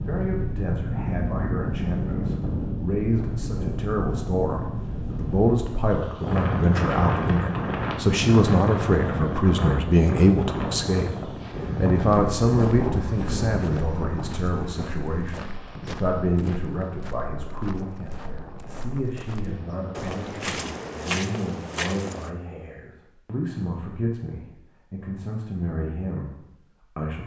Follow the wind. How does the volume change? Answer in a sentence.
The loudness of the wind goes down.